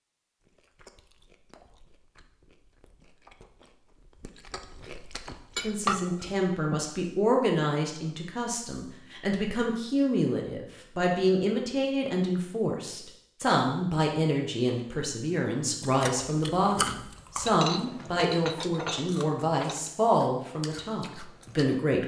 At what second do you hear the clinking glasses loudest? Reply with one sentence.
The loudest moment of the clinking glasses is at 6 seconds.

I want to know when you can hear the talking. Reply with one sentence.
You can hear the talking from 5.6 to 22.0 s.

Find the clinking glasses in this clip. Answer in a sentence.
The clinking glasses can be heard from 5.5 to 6.9 s and from 17.4 to 19.9 s.